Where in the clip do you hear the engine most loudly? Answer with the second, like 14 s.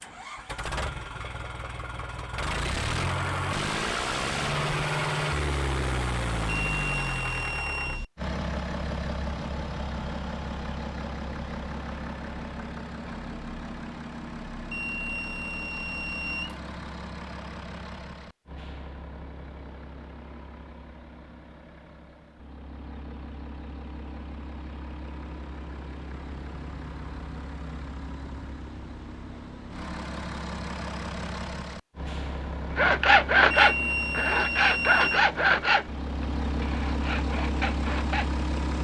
5 s.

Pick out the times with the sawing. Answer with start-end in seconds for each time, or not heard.
32.8-38.3.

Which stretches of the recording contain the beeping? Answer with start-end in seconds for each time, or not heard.
6.5-8.1, 14.7-16.6, 33.5-35.2.